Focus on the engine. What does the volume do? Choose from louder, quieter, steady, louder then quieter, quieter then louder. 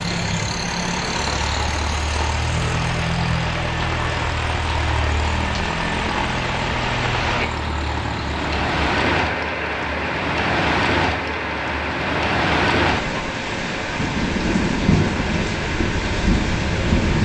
steady.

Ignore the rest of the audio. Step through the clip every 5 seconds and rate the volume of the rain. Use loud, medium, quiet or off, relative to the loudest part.
medium, loud, loud, loud.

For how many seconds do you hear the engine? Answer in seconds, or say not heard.
17 s.